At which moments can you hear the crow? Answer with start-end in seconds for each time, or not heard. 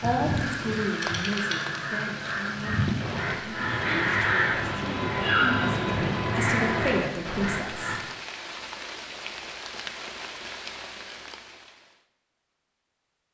0.0-8.0.